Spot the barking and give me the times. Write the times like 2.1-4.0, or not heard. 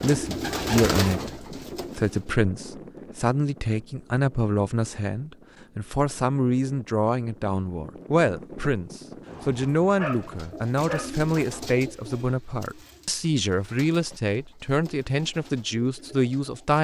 9.9-11.7.